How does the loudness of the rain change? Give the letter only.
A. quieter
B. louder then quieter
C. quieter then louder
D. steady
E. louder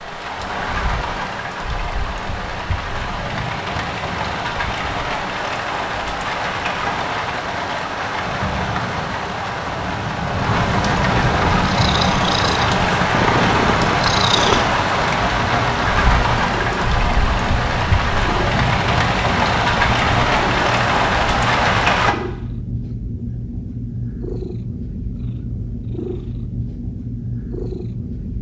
E.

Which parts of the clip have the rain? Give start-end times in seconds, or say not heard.
0.0-22.1.